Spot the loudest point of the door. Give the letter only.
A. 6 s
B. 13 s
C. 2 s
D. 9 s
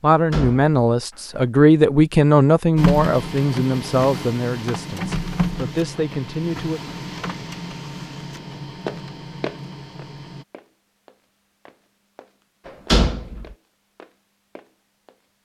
B.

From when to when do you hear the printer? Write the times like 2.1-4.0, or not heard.
2.8-10.4.